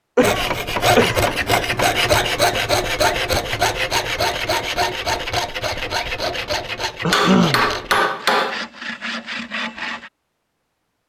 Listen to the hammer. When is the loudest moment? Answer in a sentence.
The loudest moment of the hammer is at 8 seconds.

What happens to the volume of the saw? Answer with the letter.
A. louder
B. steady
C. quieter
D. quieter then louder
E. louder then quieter
C.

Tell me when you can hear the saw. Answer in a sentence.
The saw can be heard from 0.2 to 10.1 s.